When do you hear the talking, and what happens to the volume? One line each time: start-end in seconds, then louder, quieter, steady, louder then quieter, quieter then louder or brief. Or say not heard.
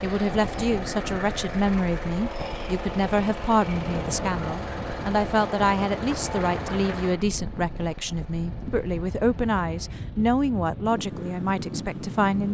0.0-12.4 steady.